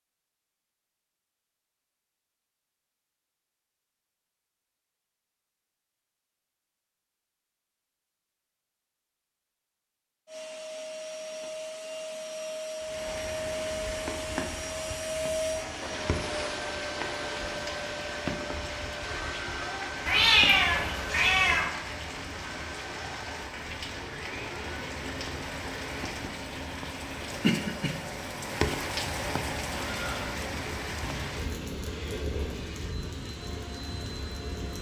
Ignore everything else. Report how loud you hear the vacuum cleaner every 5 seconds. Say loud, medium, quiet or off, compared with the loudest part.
off, off, loud, loud, medium, medium, medium.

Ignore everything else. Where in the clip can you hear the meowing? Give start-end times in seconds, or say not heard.
20.1-21.7.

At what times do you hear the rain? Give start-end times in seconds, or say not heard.
12.8-34.7.